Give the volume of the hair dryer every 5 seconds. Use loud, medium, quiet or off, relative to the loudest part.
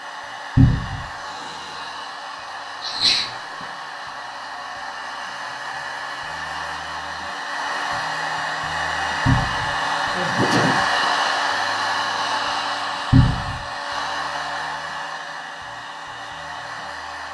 medium, loud, loud, medium.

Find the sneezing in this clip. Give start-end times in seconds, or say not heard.
2.8-3.7, 10.2-10.8.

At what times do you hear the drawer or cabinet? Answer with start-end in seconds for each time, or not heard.
0.6-1.1, 9.2-9.8, 13.1-13.6.